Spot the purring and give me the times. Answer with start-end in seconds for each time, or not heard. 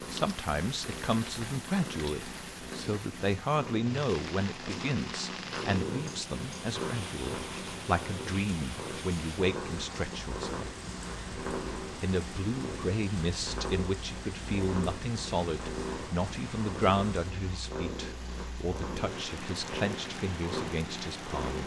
0.0-21.6.